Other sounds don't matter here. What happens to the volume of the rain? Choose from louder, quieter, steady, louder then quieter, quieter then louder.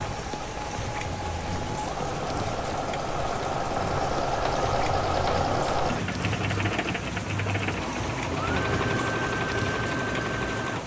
steady.